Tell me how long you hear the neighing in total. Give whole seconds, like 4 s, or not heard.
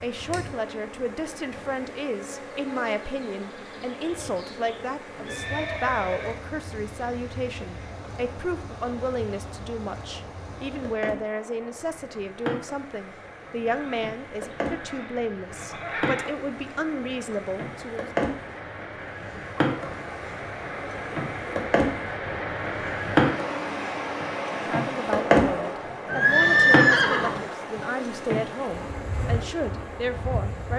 5 s.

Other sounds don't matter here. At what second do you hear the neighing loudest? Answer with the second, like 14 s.
27 s.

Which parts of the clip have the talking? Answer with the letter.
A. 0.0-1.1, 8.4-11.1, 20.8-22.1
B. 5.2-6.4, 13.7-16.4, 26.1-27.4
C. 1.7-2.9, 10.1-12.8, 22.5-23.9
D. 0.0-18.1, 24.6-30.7
D.